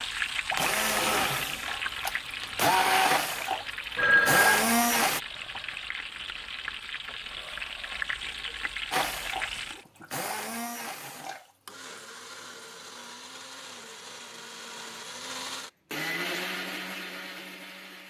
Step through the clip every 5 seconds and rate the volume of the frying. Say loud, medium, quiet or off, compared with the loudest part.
loud, loud, off, off.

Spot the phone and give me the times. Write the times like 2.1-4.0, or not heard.
4.0-4.7.